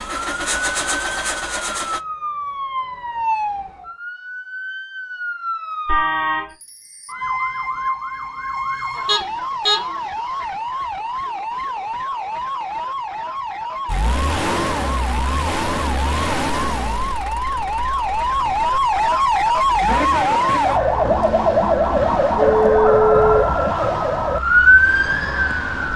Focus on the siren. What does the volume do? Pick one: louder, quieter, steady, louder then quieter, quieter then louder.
louder.